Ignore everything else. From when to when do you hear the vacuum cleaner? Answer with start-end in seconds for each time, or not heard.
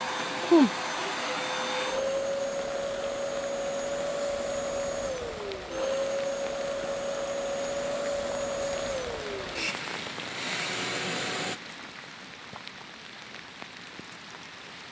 0.0-11.6.